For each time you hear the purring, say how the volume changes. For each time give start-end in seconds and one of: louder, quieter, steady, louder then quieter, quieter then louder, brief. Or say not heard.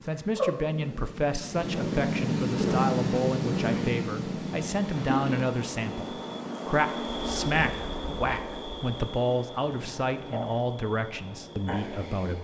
0.0-12.3 quieter.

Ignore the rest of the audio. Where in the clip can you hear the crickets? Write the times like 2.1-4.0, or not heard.
4.5-12.3.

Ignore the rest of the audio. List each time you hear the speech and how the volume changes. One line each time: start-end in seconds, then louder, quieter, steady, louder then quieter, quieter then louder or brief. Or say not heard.
0.1-12.3 steady.